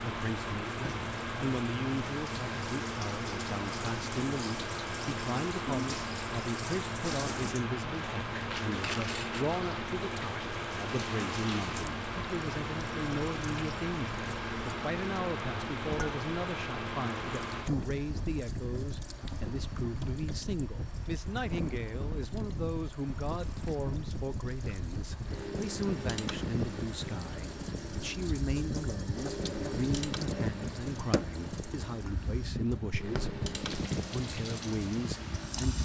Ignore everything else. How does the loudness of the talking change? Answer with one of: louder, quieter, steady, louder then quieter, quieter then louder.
steady.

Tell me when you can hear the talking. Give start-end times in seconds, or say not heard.
0.0-35.8.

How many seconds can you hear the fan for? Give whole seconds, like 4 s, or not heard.
36 s.